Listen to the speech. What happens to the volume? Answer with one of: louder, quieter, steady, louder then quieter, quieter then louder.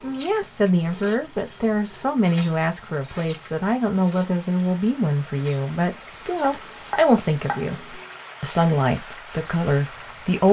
steady.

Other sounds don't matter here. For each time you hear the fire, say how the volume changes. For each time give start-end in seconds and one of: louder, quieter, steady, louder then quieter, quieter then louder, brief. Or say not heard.
not heard.